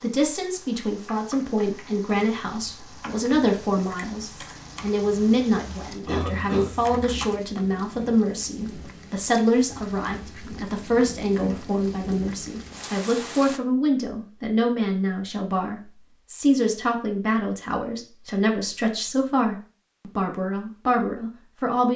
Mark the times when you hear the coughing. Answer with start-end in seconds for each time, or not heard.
6.0-7.0.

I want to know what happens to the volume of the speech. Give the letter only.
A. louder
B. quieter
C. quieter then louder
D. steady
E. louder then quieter
D.